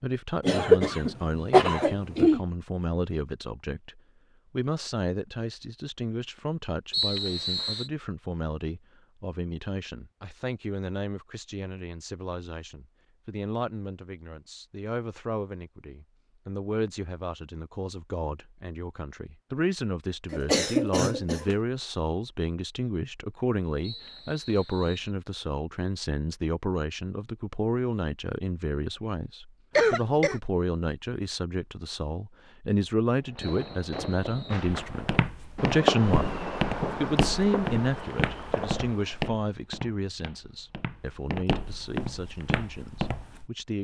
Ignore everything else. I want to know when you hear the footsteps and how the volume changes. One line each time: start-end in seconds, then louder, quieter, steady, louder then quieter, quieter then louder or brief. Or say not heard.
34.6-43.5 quieter then louder.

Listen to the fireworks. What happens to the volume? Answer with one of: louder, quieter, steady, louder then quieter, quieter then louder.
louder then quieter.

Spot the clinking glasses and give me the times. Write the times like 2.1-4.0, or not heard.
not heard.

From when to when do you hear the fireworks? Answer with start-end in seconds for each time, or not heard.
33.1-39.2.